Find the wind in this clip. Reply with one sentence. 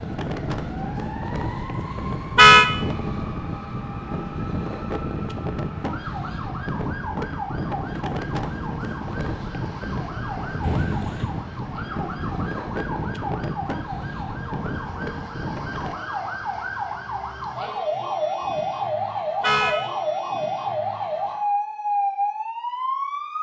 You can hear the wind from 0.0 to 15.9 s.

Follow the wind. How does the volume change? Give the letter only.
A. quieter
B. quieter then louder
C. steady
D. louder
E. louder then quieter
C.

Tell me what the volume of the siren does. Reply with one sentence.
The volume of the siren goes up.